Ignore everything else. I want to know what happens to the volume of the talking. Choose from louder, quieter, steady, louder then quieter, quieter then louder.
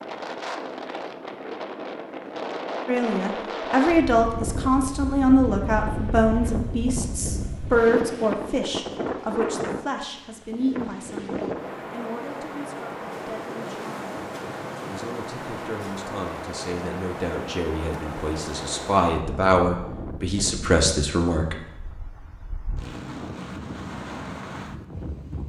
quieter then louder.